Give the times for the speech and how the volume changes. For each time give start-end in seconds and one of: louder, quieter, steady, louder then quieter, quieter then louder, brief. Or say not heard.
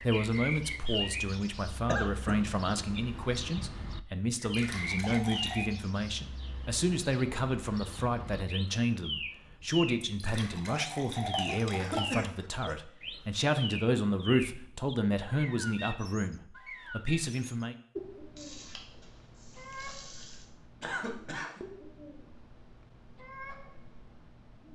0.0-17.8 steady.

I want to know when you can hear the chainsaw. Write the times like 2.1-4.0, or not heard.
not heard.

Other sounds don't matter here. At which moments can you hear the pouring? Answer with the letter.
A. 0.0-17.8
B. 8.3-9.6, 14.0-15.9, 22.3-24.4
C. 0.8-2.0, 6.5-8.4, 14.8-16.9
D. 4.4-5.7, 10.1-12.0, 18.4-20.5
D.